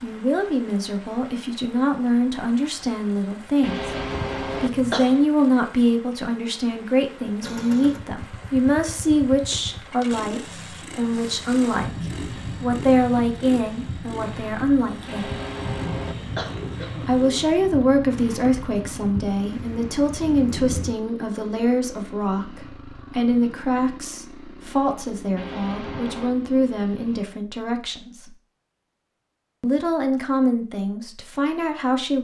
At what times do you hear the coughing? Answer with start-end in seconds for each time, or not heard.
3.6-5.2, 15.1-17.1, 25.4-26.3.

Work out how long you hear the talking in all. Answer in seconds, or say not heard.
29 s.